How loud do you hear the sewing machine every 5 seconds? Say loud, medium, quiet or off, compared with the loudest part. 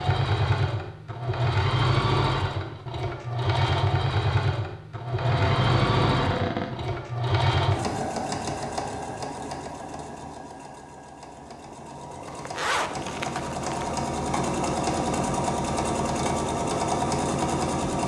loud, loud, medium, loud.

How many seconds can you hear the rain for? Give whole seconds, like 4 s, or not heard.
not heard.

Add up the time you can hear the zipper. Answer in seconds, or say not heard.
2 s.